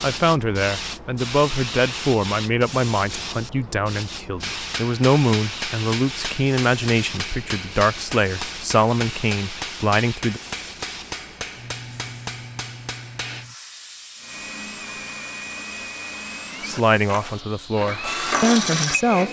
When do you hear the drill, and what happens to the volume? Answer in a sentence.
The drill can be heard from 14.2 to 19.2 s, getting louder.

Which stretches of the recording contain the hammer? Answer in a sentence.
You can hear the hammer from 4.4 to 13.4 s.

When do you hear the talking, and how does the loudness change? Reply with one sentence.
The talking can be heard from 0.0 to 10.4 s, at a steady volume; and briefly from 16.6 to 19.2 s.